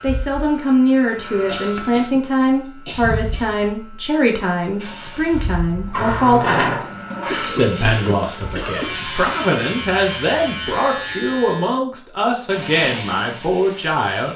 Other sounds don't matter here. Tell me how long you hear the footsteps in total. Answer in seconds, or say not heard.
not heard.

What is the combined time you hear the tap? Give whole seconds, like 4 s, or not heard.
7 s.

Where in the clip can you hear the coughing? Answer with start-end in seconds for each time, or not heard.
1.4-3.5, 7.2-8.9.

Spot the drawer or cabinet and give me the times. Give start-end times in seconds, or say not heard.
not heard.